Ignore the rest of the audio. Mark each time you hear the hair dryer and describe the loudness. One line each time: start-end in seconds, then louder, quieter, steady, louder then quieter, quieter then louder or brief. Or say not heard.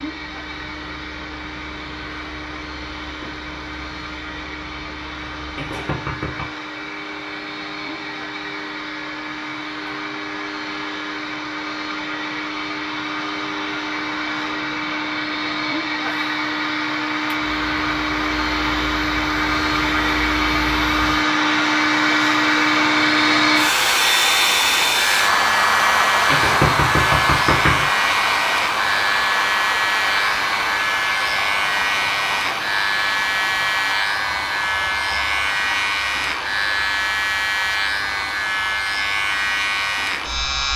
0.0-40.7 louder then quieter.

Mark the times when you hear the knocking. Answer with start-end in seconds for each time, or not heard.
5.5-6.6, 26.3-27.9.